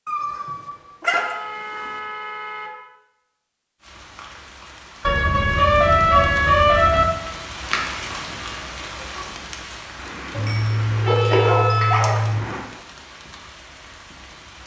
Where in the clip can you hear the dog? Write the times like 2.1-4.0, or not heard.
0.1-1.9, 10.3-12.3.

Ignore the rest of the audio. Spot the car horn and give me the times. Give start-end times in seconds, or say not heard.
1.1-2.8, 5.0-7.0, 9.9-12.7.